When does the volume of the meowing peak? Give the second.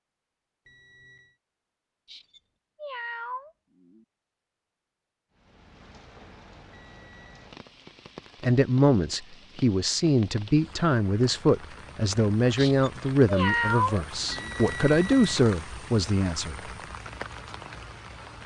14 s.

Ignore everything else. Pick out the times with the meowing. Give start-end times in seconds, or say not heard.
2.0-4.0, 12.6-14.6.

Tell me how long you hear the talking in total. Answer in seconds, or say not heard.
8 s.